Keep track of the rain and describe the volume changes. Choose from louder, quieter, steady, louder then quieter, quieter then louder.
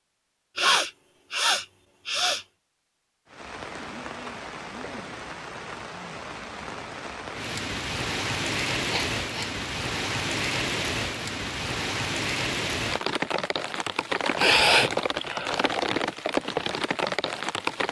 louder.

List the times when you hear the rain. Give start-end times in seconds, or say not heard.
3.2-17.8.